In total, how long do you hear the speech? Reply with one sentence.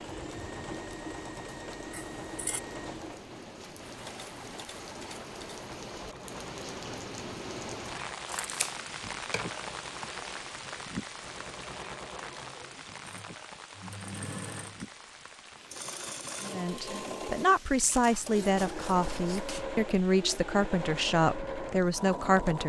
You can hear the speech for 6 seconds altogether.